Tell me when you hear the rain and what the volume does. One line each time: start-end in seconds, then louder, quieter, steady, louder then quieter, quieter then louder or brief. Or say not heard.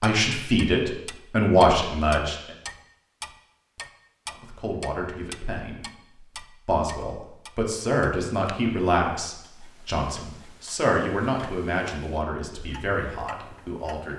not heard.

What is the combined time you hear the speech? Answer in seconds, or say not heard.
12 s.